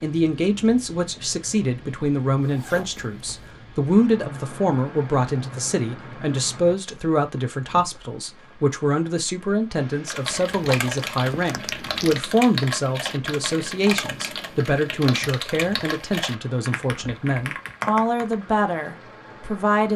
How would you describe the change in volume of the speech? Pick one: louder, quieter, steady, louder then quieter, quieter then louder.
steady.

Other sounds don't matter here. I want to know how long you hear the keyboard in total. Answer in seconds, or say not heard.
8 s.